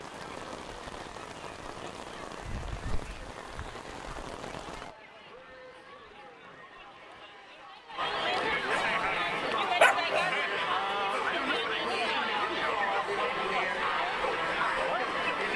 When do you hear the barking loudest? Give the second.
10 s.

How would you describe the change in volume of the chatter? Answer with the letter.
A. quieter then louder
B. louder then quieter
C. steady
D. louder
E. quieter
D.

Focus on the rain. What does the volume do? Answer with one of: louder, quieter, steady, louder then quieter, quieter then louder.
quieter.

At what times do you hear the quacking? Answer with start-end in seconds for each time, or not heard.
not heard.